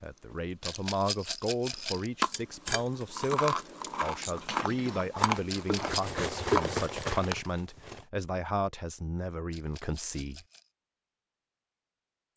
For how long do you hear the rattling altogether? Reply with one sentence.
The rattling can be heard for 3 seconds in total.